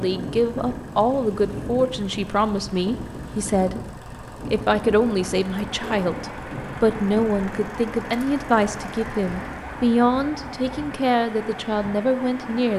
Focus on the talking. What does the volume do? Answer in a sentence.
The loudness of the talking stays about the same.